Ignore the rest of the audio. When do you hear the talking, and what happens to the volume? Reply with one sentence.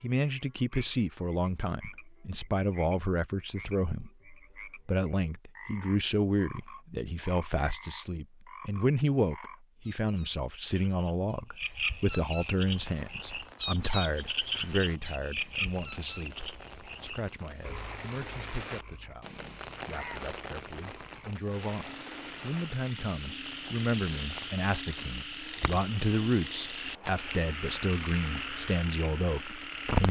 The talking can be heard from 0.0 to 30.0 s, getting quieter then louder.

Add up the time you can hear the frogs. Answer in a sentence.
You can hear the frogs for 30 seconds altogether.